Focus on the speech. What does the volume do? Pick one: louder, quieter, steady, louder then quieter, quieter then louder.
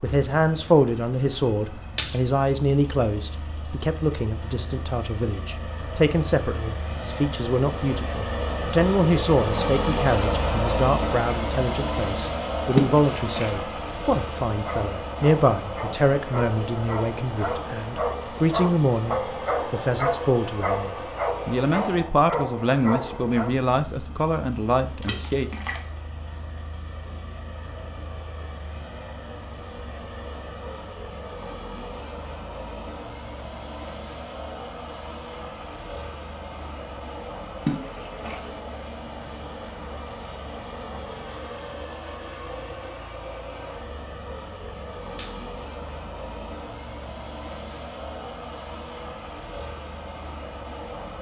steady.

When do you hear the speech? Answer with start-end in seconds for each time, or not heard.
0.0-25.4.